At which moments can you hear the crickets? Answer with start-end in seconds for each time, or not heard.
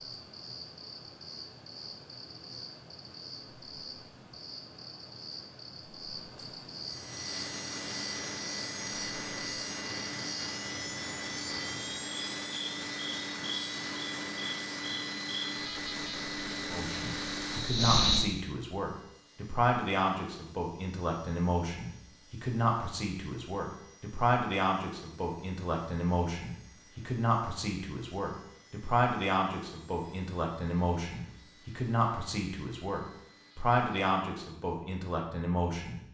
0.0-18.2.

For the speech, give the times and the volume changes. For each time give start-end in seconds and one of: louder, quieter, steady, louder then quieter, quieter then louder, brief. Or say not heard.
16.7-36.0 steady.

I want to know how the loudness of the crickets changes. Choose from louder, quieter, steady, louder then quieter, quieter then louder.
louder.